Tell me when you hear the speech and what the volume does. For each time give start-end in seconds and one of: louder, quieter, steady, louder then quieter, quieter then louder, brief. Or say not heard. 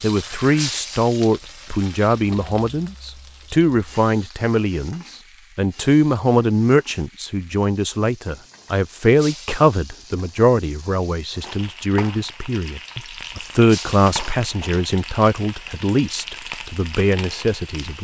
0.0-17.9 steady.